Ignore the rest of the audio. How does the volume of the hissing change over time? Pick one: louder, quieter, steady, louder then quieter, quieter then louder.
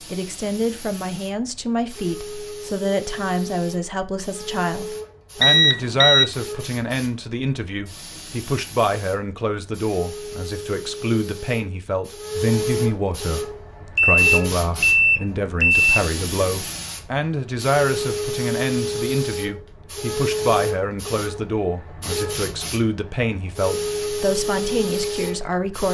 louder.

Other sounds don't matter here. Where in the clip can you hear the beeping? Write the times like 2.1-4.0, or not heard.
5.4-6.2, 13.9-15.9.